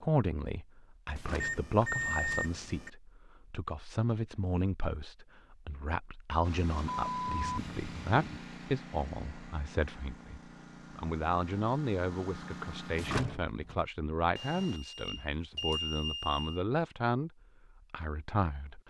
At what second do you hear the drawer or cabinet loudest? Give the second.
13 s.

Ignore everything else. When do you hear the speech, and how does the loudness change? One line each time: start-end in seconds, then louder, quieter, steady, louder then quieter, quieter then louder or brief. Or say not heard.
0.0-17.3 steady
17.9-18.8 brief.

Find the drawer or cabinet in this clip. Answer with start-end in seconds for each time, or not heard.
1.1-2.6, 12.9-13.8.